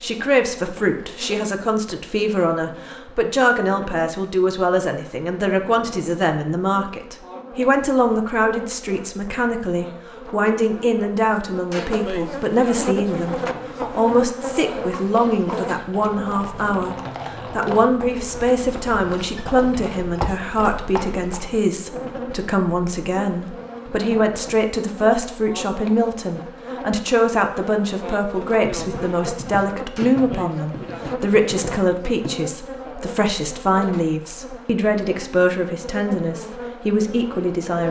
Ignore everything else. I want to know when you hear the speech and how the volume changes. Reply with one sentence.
You can hear the speech from 0.0 to 37.8 s, at a steady volume.